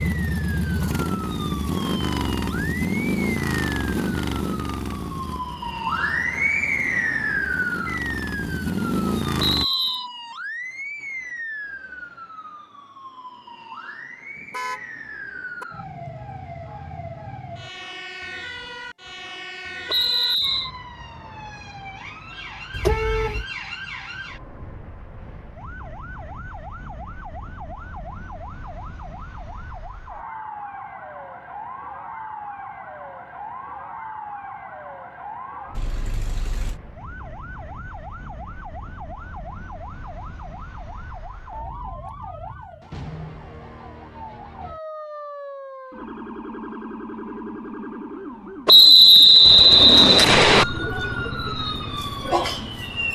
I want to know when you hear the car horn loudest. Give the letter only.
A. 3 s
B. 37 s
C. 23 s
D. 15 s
C.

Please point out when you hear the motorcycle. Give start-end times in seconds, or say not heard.
0.0-9.7, 49.4-53.1.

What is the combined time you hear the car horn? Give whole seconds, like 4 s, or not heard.
3 s.